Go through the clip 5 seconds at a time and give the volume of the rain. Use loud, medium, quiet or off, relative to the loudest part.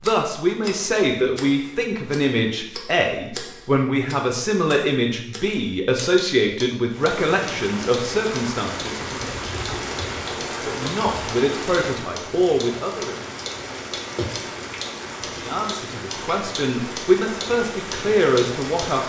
off, loud, loud, loud.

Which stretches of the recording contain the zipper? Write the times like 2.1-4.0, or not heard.
not heard.